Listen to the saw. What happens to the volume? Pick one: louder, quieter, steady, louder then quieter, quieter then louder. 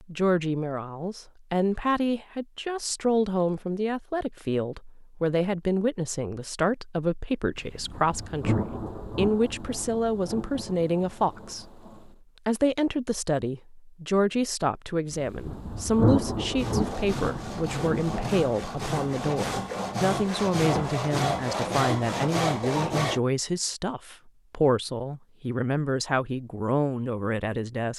louder.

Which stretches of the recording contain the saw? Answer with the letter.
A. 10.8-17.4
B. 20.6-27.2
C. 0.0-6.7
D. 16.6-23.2
D.